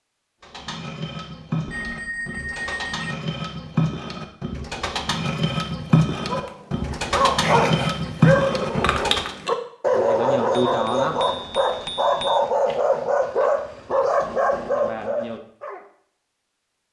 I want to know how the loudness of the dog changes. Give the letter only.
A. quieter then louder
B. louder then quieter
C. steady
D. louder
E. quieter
C.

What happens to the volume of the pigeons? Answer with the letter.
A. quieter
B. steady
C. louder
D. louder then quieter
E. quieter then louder
C.